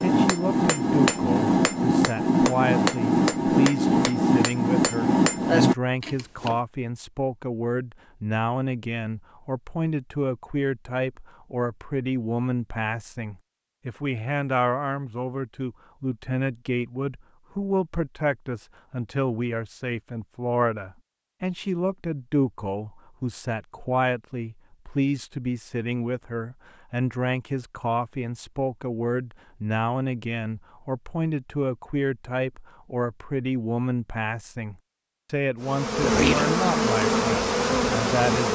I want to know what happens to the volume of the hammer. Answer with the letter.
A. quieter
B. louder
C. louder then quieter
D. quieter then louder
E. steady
E.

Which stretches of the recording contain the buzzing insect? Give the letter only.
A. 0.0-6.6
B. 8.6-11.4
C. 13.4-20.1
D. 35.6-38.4
D.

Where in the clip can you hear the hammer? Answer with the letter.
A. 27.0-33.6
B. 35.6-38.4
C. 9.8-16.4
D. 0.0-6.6
D.